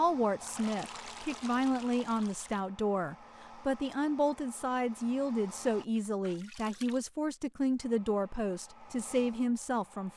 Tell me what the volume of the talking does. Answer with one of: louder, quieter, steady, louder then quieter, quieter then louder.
steady.